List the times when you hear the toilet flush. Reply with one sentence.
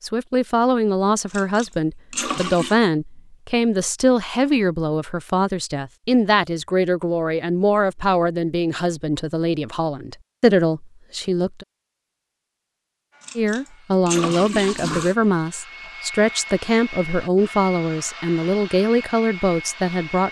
The toilet flush can be heard from 1.3 to 2.8 s and from 13.2 to 15.2 s.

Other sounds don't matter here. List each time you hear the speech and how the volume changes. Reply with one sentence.
You can hear the speech from 0.0 to 11.7 s, at a steady volume; and from 13.3 to 20.2 s, at a steady volume.